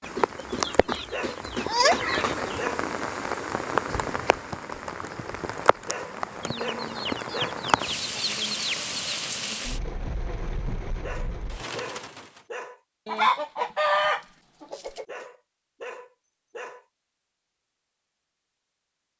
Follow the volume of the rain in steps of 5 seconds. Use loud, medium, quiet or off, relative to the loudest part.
loud, loud, medium, off.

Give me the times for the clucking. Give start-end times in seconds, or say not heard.
0.1-2.5, 6.4-9.2, 13.1-15.1.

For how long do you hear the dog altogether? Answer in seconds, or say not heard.
7 s.